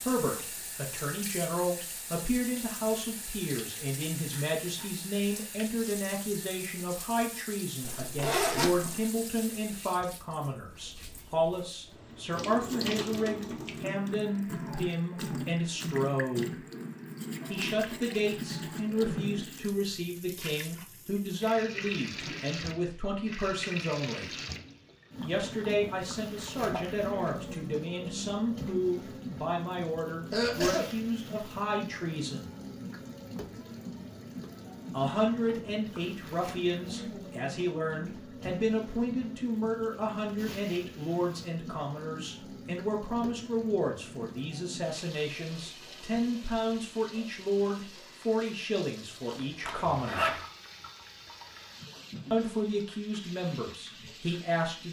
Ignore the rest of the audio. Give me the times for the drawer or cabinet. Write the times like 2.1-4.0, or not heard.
not heard.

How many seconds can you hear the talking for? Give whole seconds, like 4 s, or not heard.
49 s.